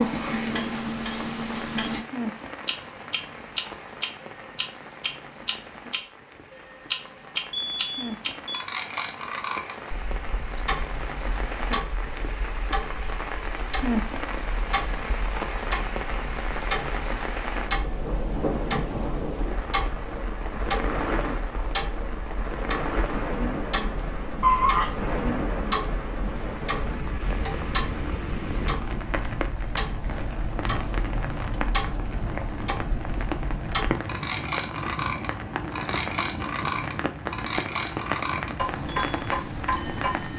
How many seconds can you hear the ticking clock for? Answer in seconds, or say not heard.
40 s.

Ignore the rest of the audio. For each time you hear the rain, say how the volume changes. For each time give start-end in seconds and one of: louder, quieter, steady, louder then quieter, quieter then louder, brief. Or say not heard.
0.0-40.3 louder.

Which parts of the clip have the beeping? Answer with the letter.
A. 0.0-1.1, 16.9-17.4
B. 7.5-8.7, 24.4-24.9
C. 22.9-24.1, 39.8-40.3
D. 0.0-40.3
B.